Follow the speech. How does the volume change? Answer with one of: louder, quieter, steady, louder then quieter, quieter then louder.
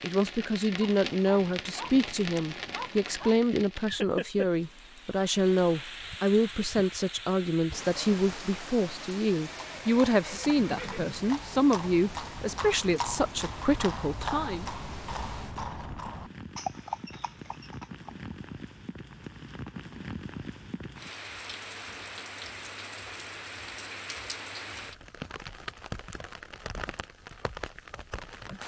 steady.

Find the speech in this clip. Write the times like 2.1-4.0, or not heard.
0.0-14.7.